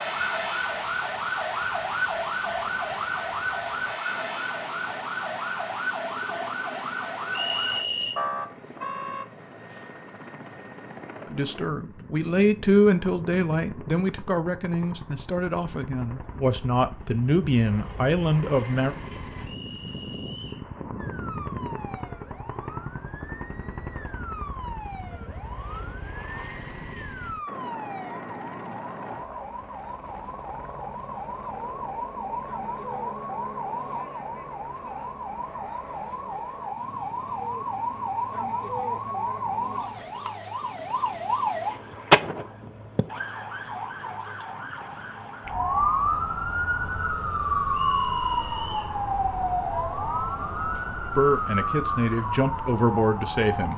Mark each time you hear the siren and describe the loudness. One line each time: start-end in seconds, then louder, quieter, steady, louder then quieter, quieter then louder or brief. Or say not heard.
0.0-9.2 steady
20.9-53.7 louder.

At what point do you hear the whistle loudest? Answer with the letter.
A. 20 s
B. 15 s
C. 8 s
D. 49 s
C.